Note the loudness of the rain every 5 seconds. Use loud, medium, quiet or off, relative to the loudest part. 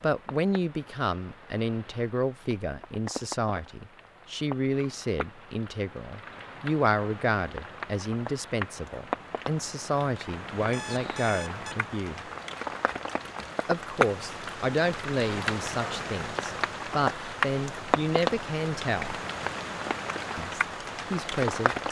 quiet, medium, loud, loud, loud.